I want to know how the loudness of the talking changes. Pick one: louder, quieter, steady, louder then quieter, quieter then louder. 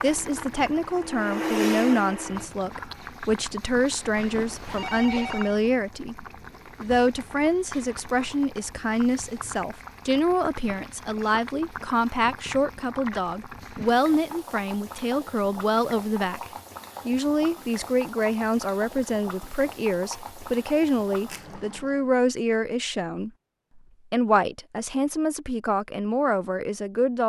steady.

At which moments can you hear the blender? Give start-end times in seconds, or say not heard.
0.0-2.5.